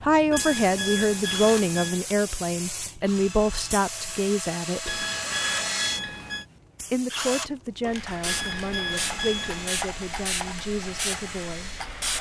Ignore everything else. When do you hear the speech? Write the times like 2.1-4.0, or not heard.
0.0-5.0, 6.9-11.7.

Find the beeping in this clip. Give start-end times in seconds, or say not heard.
0.3-2.0, 4.8-6.5, 8.2-9.9.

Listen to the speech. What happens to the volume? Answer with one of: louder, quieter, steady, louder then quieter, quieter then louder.
quieter.